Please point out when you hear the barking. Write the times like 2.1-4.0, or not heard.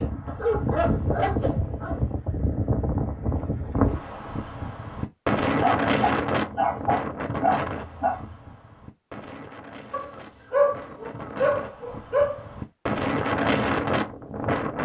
0.2-1.9, 5.5-8.3, 9.9-12.4.